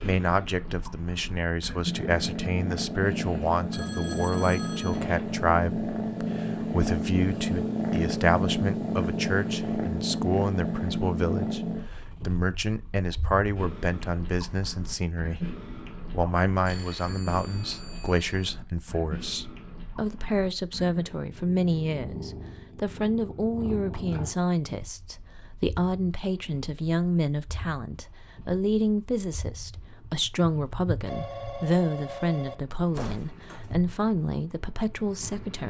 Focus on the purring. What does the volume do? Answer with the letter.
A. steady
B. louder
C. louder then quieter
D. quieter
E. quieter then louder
D.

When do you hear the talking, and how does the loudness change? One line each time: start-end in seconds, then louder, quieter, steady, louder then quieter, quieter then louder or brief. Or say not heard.
0.0-35.6 steady.